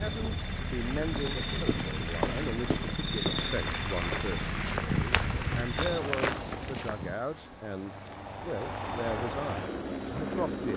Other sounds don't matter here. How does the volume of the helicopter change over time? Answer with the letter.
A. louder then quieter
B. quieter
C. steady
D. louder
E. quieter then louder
E.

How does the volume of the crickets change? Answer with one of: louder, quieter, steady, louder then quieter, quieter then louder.
louder.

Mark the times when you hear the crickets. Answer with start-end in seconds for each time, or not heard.
0.0-10.7.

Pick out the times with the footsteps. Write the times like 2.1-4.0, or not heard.
1.1-7.2.